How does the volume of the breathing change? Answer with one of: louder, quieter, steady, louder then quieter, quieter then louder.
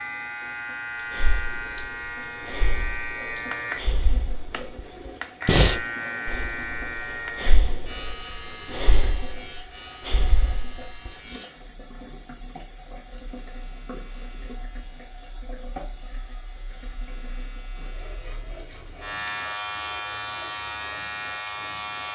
louder then quieter.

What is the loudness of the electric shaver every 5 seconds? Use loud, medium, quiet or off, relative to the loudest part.
loud, loud, quiet, medium, loud.